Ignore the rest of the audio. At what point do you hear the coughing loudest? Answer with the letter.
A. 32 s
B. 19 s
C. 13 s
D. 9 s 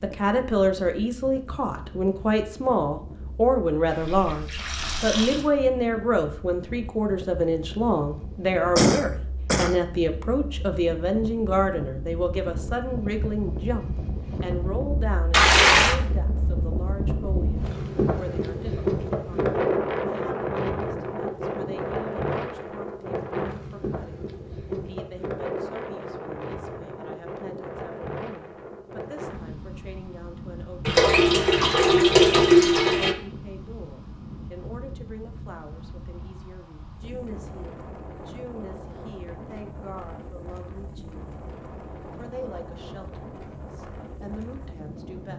D.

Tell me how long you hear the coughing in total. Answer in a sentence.
The coughing can be heard for 2 seconds in total.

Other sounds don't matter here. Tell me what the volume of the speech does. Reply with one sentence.
The loudness of the speech goes down.